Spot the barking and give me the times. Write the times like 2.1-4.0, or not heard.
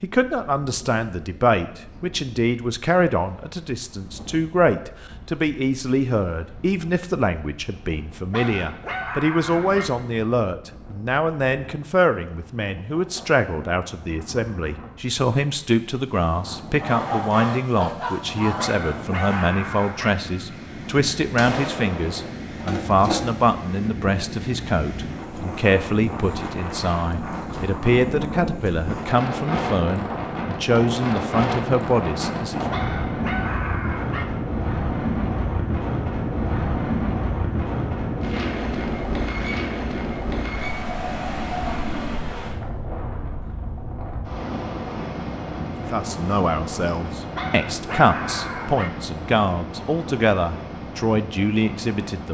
8.3-9.9, 18.6-20.1, 32.7-34.2, 47.4-48.9.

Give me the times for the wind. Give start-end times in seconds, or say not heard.
0.0-52.2.